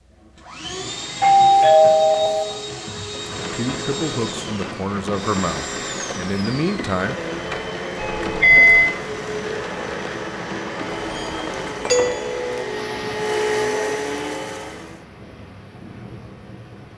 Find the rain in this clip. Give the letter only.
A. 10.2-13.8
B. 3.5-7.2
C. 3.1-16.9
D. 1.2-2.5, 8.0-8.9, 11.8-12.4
C.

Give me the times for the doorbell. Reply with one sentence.
You can hear the doorbell from 1.2 to 2.5 s, from 8.0 to 8.9 s and from 11.8 to 12.4 s.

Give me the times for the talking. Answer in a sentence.
The talking can be heard from 3.5 to 7.2 s.